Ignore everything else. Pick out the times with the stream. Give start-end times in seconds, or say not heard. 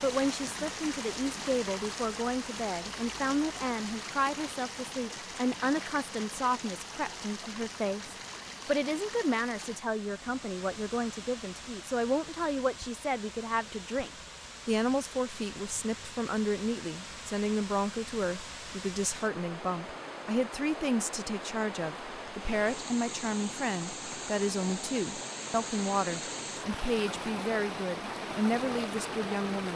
0.0-29.7.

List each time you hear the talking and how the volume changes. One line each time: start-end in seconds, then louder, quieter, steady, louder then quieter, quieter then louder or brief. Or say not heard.
0.0-29.7 steady.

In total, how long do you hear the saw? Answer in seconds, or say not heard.
not heard.